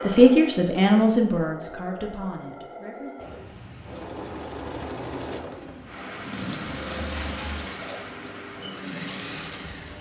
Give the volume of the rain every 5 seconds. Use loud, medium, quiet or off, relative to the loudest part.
medium, loud.